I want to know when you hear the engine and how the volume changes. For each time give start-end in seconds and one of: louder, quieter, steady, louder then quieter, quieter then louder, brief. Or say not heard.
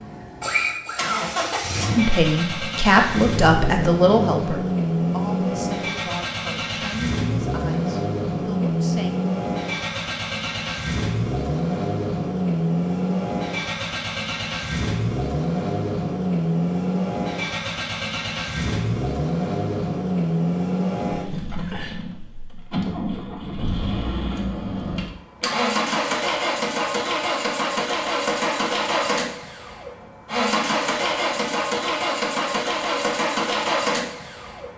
0.0-34.7 steady.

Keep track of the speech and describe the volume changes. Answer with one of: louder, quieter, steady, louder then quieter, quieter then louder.
quieter.